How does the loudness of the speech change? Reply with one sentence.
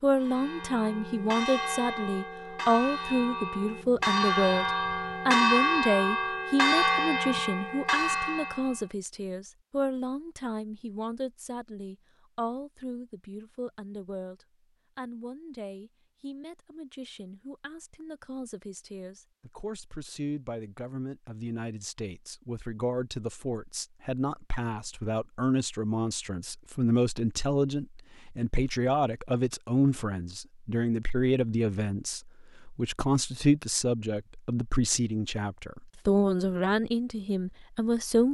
The volume of the speech goes down, then up.